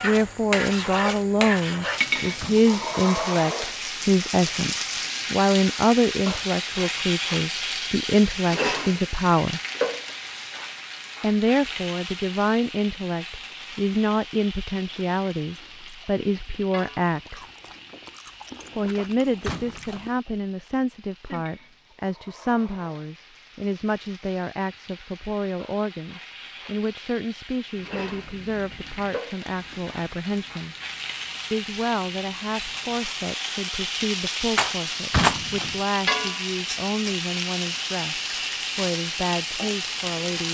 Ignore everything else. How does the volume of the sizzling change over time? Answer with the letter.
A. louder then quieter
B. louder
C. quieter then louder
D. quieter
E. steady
C.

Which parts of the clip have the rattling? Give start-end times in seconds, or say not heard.
34.5-35.4.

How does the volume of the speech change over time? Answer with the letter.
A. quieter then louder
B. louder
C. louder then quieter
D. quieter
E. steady
D.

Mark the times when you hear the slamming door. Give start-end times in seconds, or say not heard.
2.4-3.0, 19.4-20.1, 35.1-35.8.